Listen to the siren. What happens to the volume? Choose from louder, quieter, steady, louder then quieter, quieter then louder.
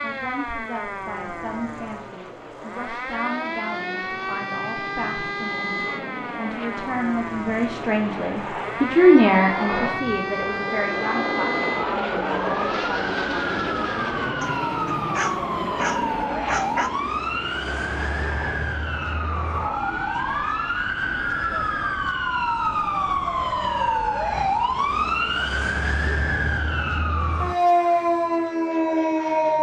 louder.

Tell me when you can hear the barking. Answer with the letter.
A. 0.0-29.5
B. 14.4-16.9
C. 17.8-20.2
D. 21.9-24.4
B.